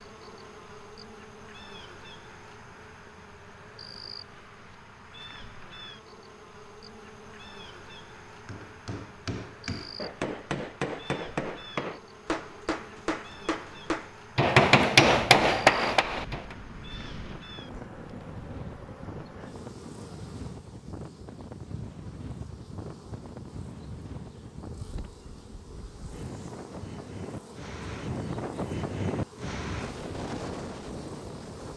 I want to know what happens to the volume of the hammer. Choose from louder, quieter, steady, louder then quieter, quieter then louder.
louder.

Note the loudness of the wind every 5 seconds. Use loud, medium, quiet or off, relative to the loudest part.
off, off, off, medium, medium, loud, loud.